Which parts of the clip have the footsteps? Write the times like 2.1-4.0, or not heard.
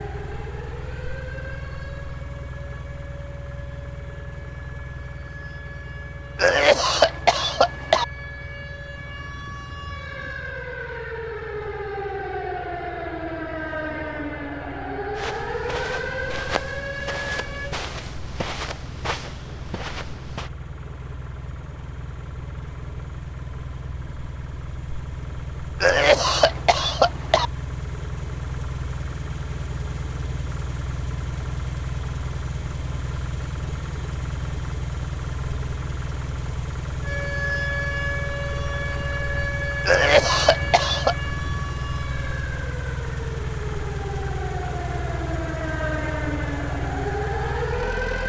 15.2-20.5.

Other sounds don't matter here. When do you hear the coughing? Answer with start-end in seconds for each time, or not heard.
6.3-8.1, 25.8-27.5, 39.9-41.1.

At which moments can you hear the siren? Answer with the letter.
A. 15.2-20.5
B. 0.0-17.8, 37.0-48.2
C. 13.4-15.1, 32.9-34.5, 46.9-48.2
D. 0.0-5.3
B.